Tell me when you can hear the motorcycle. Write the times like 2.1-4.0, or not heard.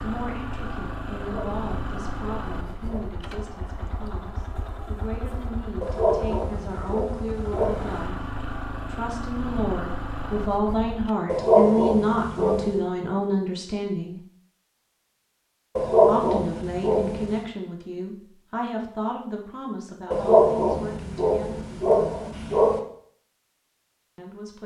0.0-11.2.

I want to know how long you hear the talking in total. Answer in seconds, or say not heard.
21 s.